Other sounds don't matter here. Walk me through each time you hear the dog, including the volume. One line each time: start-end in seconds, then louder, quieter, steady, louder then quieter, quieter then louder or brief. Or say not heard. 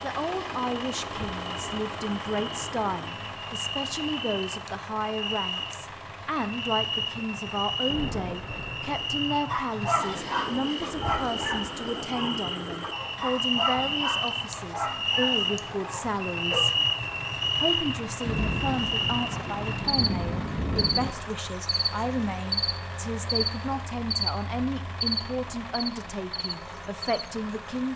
9.5-16.7 quieter.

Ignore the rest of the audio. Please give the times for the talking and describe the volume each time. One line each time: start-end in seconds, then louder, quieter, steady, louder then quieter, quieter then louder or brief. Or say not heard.
0.0-16.7 steady
17.6-27.9 steady.